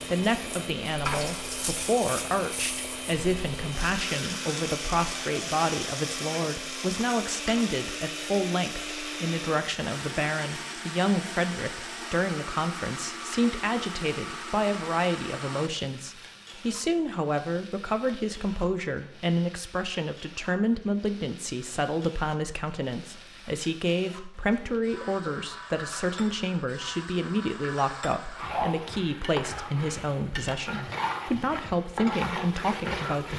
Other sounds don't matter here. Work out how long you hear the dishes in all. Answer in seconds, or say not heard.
not heard.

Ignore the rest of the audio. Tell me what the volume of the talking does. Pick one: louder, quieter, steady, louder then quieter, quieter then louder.
steady.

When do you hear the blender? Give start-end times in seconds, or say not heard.
0.0-15.7.